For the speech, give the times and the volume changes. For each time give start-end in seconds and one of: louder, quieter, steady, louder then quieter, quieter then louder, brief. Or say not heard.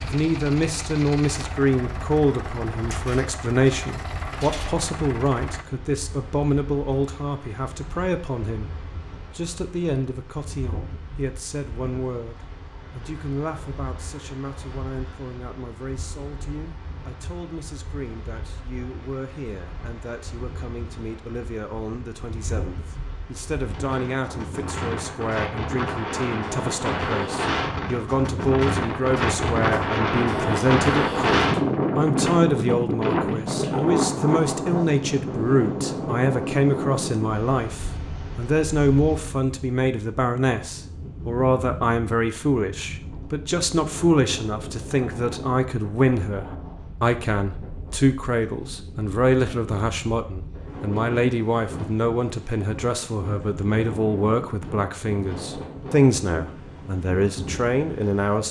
0.0-58.4 quieter then louder.